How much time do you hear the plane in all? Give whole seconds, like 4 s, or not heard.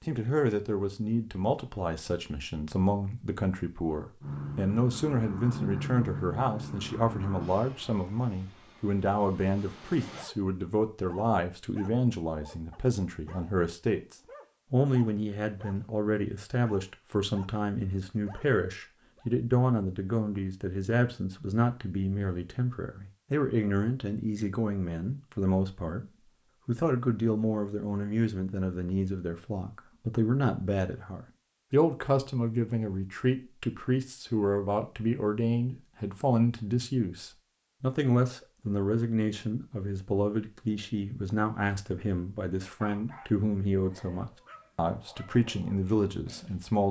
6 s.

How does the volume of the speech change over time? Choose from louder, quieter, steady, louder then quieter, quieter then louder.
steady.